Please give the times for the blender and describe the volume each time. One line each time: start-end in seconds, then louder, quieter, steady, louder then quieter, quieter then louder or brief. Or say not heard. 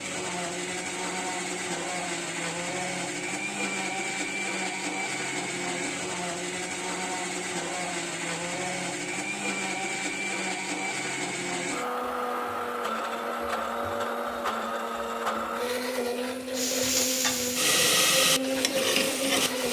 0.0-19.6 steady.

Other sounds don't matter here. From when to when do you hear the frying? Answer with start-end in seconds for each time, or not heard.
16.6-19.6.